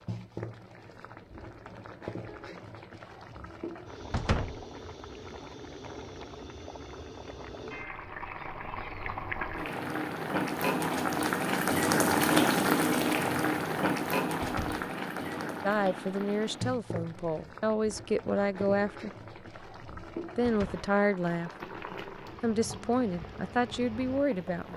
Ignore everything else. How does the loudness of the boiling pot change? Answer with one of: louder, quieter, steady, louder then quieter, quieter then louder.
louder then quieter.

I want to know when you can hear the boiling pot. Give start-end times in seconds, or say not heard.
0.0-24.7.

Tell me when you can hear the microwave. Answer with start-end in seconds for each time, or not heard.
not heard.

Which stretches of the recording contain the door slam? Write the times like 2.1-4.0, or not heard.
4.1-4.6, 14.4-14.9, 20.4-20.9.